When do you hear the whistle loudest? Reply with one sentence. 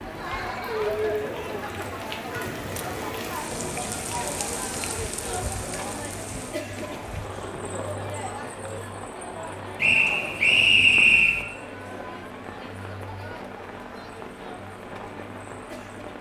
The loudest moment of the whistle is at 11 seconds.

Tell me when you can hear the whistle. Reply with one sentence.
The whistle can be heard from 9.8 to 11.4 s.